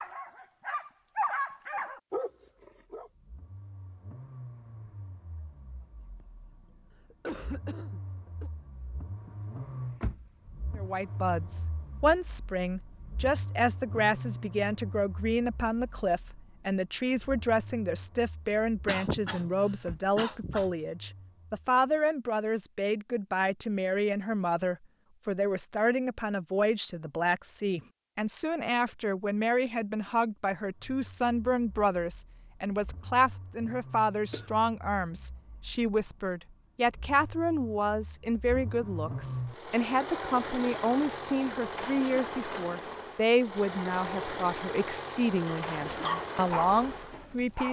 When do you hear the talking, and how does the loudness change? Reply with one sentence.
The talking can be heard from 10.8 to 47.6 s, at a steady volume.